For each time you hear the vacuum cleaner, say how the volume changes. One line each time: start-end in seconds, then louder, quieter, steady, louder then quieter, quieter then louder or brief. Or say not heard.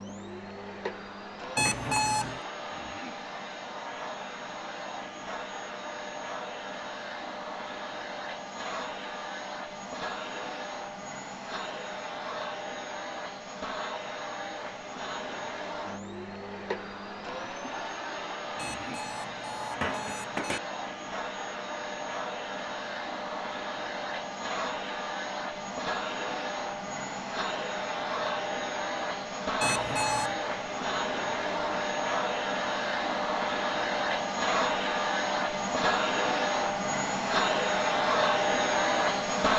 0.0-39.5 louder.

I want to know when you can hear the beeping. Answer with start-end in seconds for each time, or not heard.
1.6-2.4, 18.6-20.6, 29.6-30.4.